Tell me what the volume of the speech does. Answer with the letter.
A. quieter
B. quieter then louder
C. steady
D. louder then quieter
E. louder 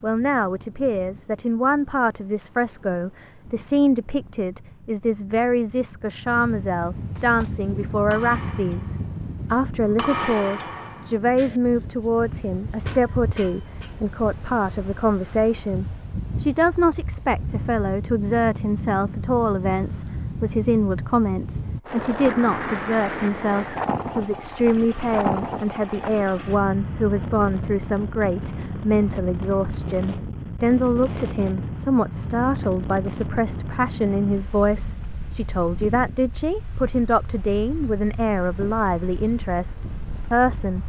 C.